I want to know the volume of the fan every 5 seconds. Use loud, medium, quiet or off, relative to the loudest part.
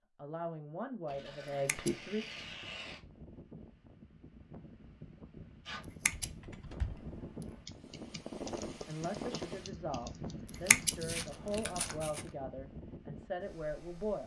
medium, loud, loud.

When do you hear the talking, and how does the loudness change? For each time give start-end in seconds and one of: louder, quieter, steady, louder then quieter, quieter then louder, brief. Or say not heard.
0.1-2.2 brief
8.8-14.2 steady.